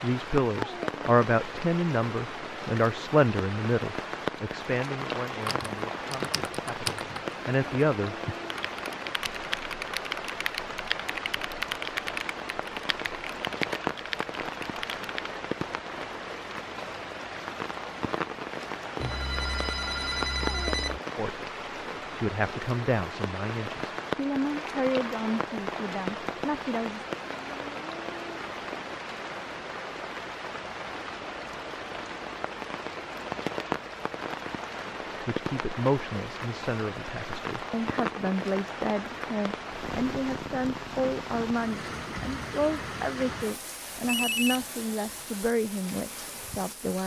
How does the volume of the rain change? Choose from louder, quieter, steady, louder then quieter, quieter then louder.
steady.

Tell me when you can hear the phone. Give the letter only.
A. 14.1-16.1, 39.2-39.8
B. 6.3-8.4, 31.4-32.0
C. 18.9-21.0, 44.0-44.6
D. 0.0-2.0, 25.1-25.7
C.